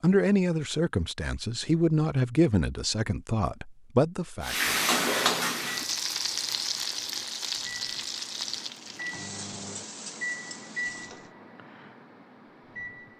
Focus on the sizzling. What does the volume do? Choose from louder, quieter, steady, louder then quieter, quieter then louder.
quieter.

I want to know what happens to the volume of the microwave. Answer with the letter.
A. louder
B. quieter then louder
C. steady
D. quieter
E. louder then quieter
E.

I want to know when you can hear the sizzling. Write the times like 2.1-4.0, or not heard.
4.4-11.3.